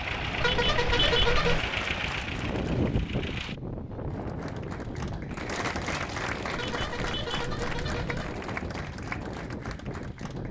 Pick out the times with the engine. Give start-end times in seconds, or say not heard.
0.0-3.5.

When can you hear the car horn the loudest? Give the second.
1 s.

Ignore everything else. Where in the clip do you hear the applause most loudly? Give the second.
6 s.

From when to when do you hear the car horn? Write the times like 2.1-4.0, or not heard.
0.4-1.6, 6.5-8.3.